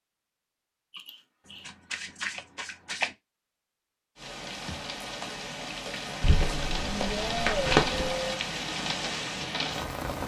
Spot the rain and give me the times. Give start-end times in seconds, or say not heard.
4.2-10.2.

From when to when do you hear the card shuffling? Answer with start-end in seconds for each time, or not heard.
1.4-3.1, 6.2-8.2.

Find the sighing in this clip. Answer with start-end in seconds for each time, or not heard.
0.9-1.6, 6.5-8.2.